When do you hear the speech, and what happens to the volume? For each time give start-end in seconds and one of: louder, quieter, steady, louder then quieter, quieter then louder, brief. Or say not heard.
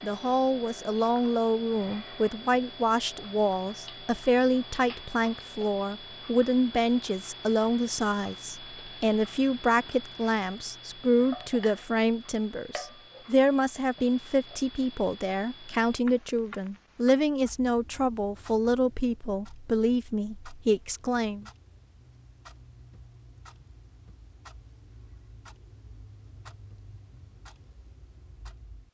0.0-21.4 steady.